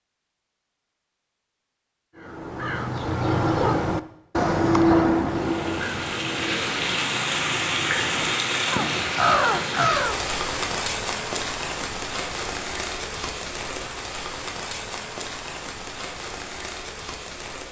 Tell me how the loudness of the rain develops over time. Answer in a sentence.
The volume of the rain goes down.